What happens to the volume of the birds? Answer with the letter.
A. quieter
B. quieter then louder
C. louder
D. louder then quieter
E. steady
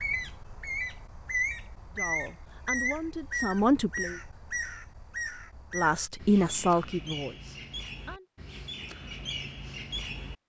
A.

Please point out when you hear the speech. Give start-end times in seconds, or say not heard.
1.9-4.2, 5.7-8.2.